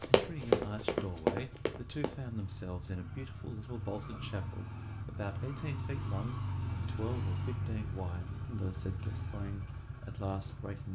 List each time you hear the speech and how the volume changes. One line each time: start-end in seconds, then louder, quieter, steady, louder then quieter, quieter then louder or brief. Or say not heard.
0.1-10.9 steady.